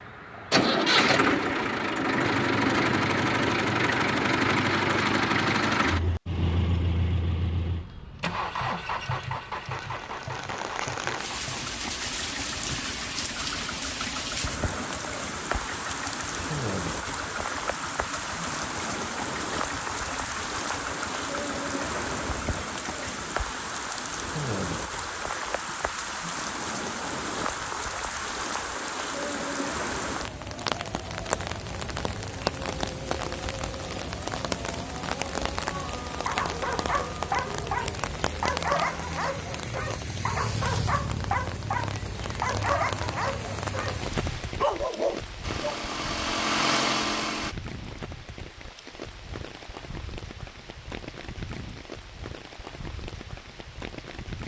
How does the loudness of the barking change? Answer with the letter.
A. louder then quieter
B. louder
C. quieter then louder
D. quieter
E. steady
E.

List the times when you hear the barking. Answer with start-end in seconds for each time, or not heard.
35.7-45.9.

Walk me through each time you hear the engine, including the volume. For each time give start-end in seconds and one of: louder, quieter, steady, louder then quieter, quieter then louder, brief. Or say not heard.
0.0-23.2 quieter
45.4-47.5 brief.